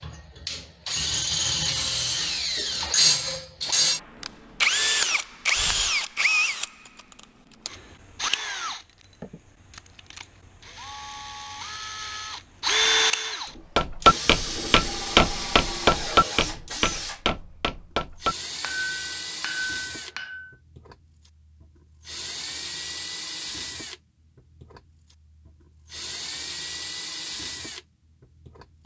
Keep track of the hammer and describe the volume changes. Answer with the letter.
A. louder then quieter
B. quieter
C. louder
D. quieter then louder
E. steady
B.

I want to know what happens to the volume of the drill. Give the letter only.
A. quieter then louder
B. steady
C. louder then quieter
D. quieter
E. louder
D.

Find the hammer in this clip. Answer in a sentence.
You can hear the hammer from 13.8 to 20.6 s.